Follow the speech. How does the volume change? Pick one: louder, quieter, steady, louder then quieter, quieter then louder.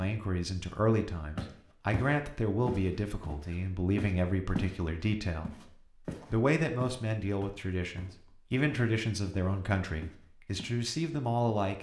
steady.